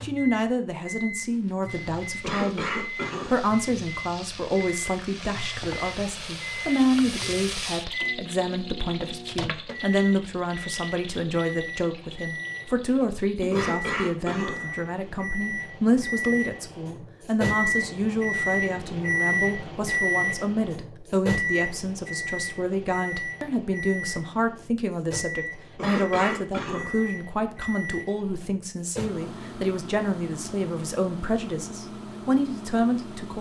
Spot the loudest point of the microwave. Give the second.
20 s.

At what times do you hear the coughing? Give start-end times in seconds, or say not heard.
2.2-3.5, 13.5-14.8, 25.8-27.1.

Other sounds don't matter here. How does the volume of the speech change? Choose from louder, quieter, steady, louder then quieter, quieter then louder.
steady.